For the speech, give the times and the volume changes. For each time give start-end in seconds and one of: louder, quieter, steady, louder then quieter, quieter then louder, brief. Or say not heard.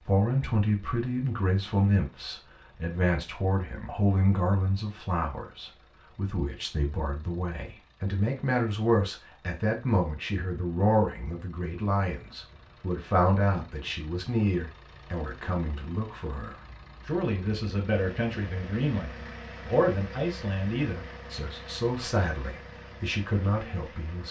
0.1-24.2 steady.